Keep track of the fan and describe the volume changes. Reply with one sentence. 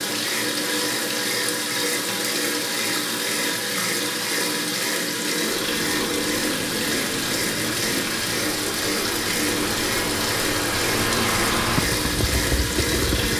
The volume of the fan goes up.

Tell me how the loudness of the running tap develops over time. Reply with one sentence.
The loudness of the running tap stays about the same.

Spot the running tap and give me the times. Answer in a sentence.
You can hear the running tap from 0.0 to 13.3 s.